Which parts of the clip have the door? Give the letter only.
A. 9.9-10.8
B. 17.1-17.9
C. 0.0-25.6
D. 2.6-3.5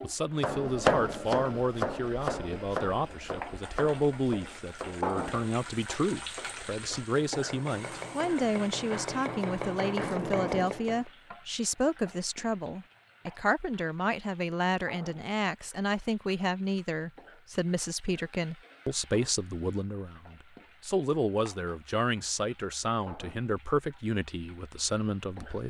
A.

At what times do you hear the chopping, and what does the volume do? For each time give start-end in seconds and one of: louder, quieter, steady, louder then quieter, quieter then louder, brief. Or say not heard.
0.3-11.1 quieter then louder.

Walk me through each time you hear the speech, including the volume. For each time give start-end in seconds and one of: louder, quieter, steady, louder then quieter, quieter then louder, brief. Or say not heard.
0.0-25.6 steady.